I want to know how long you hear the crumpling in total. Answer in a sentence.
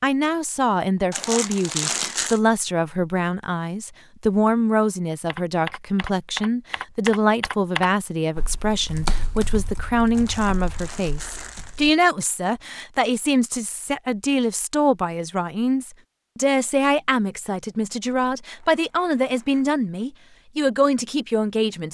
You can hear the crumpling for 4 seconds altogether.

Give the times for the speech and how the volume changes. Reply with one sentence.
You can hear the speech from 0.0 to 21.9 s, at a steady volume.